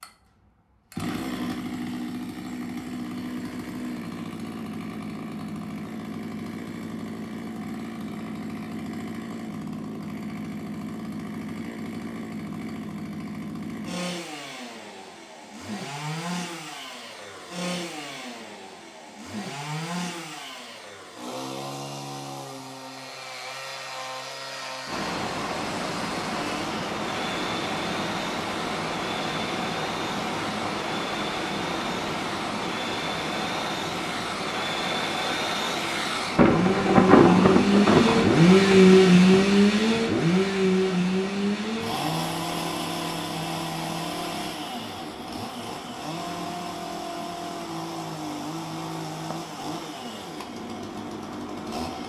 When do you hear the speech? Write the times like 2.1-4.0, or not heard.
not heard.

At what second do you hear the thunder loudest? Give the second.
37 s.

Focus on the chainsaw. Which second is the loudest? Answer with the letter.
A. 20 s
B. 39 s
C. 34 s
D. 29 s
B.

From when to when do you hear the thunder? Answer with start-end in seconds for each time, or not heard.
36.4-39.6.